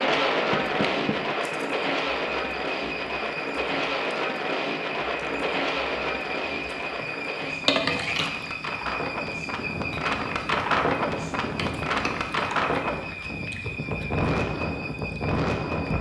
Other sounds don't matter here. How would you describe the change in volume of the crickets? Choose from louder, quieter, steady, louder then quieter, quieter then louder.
louder then quieter.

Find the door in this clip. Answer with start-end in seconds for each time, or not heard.
0.5-1.2.